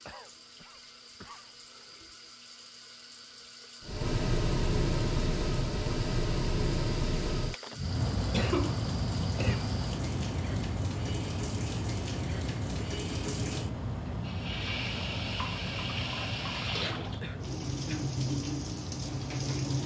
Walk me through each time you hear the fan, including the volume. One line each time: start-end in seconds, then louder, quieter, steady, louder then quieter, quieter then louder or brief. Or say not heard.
3.8-19.8 quieter.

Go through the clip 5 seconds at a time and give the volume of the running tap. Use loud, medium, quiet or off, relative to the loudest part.
quiet, medium, medium, loud.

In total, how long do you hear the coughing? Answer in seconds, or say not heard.
4 s.